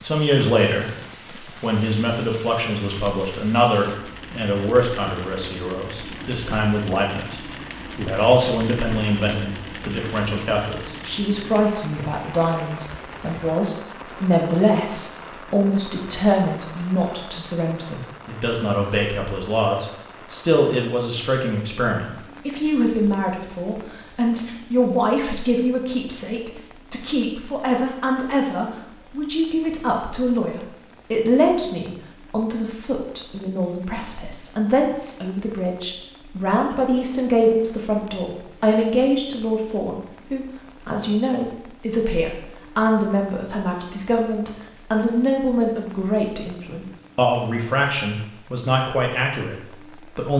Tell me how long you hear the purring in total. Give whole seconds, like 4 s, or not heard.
not heard.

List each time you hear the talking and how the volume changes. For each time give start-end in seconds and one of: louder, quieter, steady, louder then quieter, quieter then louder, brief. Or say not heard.
0.0-50.3 steady.